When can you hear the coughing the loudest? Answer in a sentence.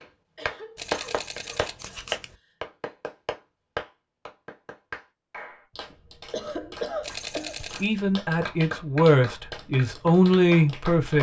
The loudest moment of the coughing is at 7 seconds.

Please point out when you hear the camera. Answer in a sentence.
You can hear the camera from 0.8 to 2.4 s and from 7.0 to 7.9 s.